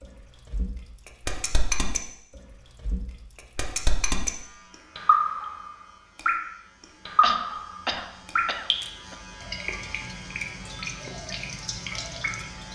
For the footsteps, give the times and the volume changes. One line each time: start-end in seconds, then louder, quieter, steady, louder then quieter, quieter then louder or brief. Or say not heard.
not heard.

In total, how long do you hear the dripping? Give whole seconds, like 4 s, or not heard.
11 s.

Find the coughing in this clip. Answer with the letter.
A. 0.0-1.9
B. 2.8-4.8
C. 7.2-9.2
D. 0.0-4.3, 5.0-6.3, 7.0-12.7
C.